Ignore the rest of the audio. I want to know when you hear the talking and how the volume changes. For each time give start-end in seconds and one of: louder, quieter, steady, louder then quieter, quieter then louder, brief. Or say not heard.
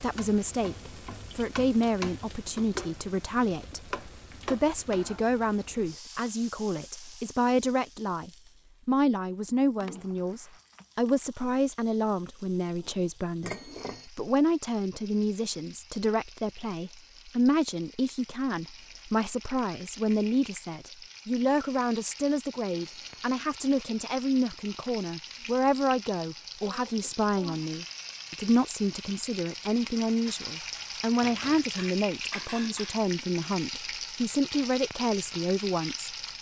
0.0-36.1 steady.